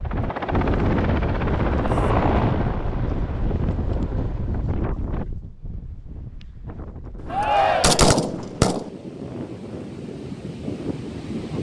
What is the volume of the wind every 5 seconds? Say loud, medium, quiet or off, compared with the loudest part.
loud, medium, medium.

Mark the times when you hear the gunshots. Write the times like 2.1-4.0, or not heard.
7.2-8.9.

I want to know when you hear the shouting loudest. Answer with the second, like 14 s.
8 s.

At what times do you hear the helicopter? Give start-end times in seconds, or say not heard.
0.0-4.8.